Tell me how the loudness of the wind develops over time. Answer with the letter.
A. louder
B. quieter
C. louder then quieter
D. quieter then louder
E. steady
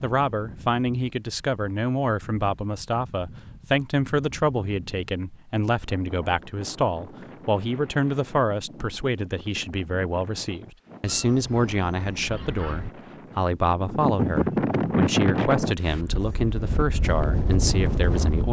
A.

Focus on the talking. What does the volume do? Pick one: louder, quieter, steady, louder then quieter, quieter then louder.
steady.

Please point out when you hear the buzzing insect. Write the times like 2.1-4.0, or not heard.
not heard.